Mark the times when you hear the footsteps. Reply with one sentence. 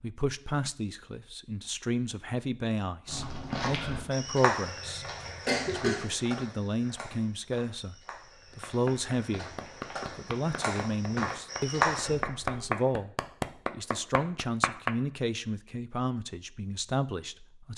You can hear the footsteps from 3.0 to 12.2 s.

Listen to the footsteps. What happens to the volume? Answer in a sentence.
The loudness of the footsteps goes down, then up.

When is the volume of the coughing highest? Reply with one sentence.
The loudest moment of the coughing is at 6 seconds.